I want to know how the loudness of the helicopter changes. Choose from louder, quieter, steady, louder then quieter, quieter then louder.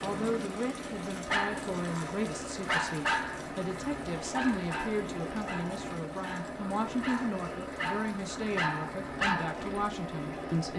steady.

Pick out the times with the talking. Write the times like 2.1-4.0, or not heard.
0.0-10.7.